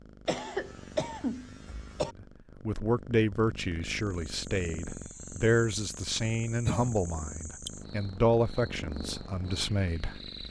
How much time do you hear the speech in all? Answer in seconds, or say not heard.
8 s.